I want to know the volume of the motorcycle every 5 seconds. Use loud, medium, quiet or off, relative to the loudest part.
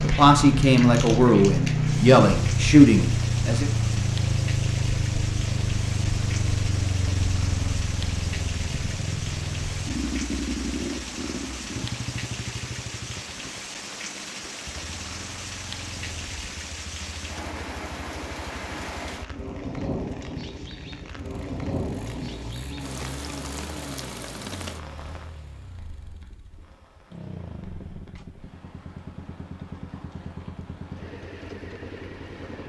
loud, medium, medium, quiet, quiet, quiet, quiet.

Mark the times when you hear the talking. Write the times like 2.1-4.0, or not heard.
0.0-3.7.